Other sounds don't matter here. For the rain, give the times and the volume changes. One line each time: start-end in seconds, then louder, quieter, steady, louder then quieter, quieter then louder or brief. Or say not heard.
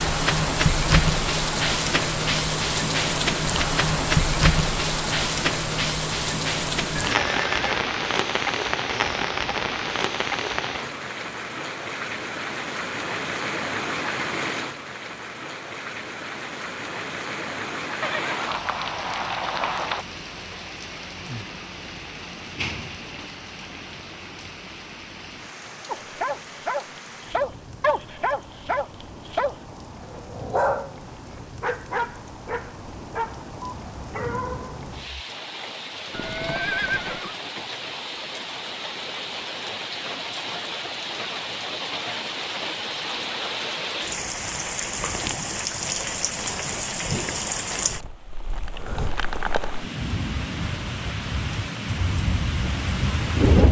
0.0-53.6 quieter then louder.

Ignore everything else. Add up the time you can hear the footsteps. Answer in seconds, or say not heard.
not heard.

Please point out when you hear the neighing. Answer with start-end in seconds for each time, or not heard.
7.1-7.9, 18.0-20.1, 36.1-37.4.